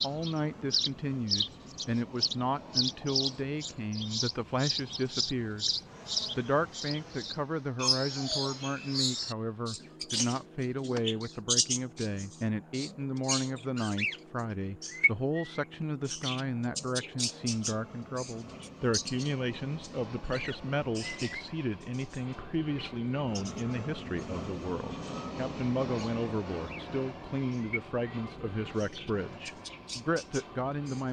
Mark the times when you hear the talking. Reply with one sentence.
You can hear the talking from 0.0 to 5.7 s and from 6.3 to 31.0 s.